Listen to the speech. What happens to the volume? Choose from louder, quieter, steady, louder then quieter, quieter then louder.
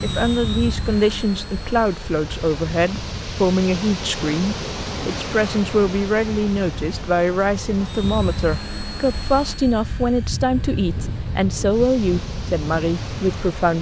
steady.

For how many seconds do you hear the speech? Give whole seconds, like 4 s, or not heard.
14 s.